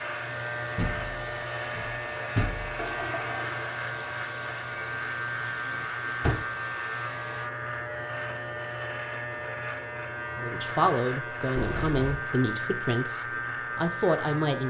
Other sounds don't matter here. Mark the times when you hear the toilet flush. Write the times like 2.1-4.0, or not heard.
2.8-3.6.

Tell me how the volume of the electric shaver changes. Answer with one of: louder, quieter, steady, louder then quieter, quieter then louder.
steady.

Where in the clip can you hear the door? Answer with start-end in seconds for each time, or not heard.
0.8-2.8, 5.4-6.5, 11.6-12.2.